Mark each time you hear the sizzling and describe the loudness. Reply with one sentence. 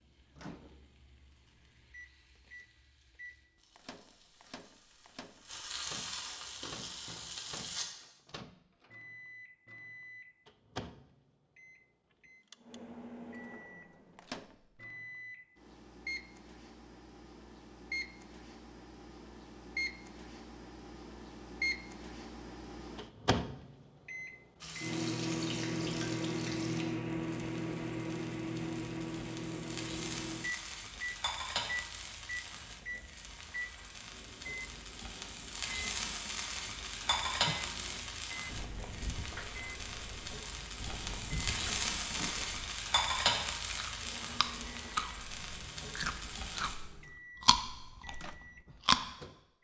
The sizzling can be heard from 0.0 to 7.8 s, getting louder; and from 24.6 to 46.8 s, getting louder.